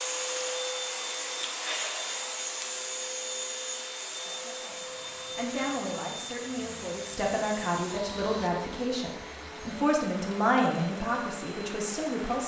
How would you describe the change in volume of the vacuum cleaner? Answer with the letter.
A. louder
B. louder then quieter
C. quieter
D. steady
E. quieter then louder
C.